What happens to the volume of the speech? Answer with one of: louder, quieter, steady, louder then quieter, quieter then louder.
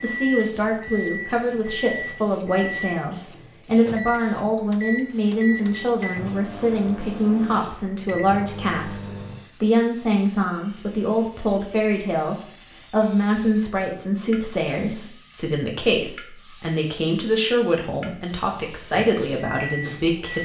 steady.